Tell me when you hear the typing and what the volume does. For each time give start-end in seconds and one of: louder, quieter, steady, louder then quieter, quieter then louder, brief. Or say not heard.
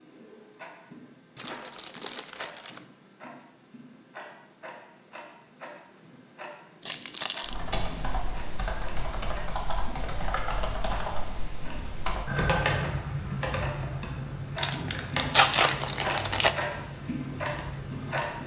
7.5-18.4 louder then quieter.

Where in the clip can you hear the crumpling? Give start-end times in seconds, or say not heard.
1.4-2.9, 6.8-7.6, 14.6-16.6.